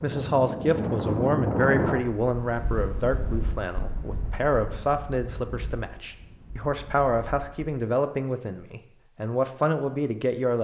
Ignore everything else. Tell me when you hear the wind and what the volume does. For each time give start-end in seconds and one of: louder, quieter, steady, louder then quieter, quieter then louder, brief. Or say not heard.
0.0-7.5 quieter.